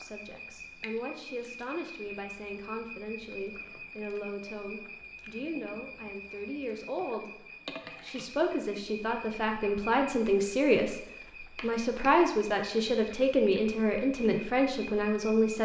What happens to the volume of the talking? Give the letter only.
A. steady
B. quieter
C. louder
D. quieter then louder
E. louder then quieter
C.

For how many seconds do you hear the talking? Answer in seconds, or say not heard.
15 s.